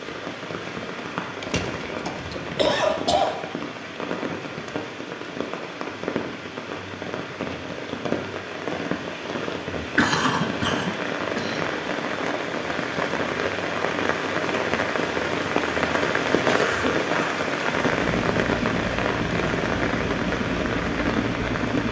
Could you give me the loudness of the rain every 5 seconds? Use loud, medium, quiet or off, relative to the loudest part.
medium, medium, loud, loud, loud.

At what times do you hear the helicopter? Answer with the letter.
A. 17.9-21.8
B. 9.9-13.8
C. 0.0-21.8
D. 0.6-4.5
A.